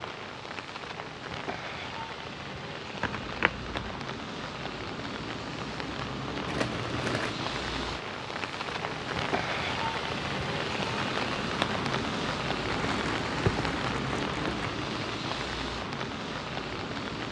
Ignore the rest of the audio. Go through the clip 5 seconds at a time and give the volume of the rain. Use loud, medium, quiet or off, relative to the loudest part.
medium, loud, loud, loud.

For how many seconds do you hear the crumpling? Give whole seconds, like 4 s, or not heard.
4 s.